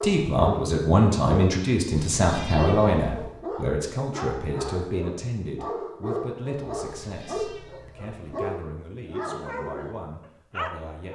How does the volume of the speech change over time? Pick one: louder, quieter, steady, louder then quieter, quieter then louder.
quieter.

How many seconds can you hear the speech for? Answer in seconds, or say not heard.
11 s.